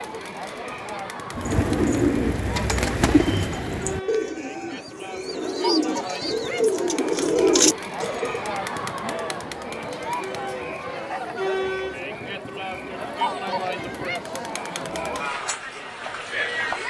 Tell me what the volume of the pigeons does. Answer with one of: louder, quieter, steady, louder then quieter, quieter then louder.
quieter then louder.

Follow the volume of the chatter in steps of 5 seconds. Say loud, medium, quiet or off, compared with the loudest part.
medium, loud, loud, loud.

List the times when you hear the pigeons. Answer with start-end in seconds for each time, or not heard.
1.3-8.4.